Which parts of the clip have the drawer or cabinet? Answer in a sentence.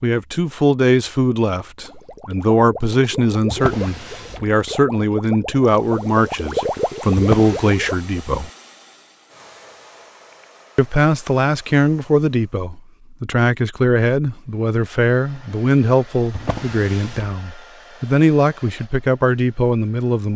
The drawer or cabinet can be heard from 3.5 to 4.5 s, from 7.2 to 7.8 s and from 16.3 to 17.4 s.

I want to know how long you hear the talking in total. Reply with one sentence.
The talking can be heard for 18 seconds in total.